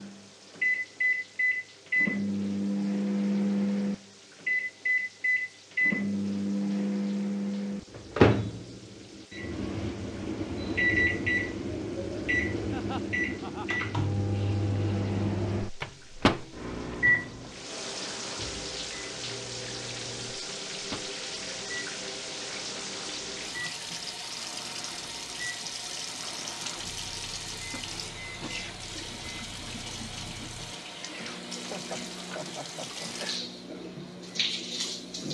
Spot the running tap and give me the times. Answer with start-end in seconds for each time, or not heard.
0.0-35.3.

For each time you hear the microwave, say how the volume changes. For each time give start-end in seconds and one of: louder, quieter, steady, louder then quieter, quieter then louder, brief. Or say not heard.
0.0-35.3 quieter.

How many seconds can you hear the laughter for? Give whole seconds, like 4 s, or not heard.
3 s.